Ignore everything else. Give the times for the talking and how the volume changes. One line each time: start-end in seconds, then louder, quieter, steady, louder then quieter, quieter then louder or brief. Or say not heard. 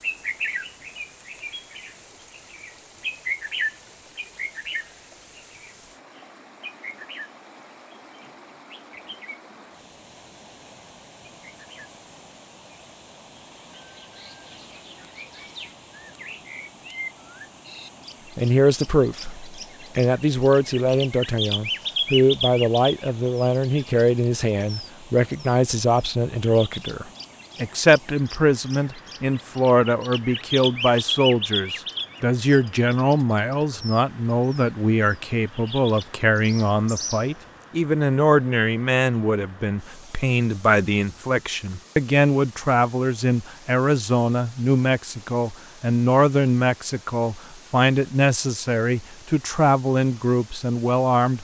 18.4-51.4 steady.